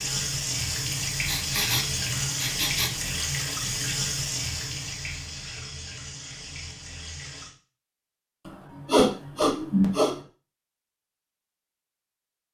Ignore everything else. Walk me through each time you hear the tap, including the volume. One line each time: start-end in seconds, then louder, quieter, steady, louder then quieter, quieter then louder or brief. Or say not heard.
0.0-7.5 quieter.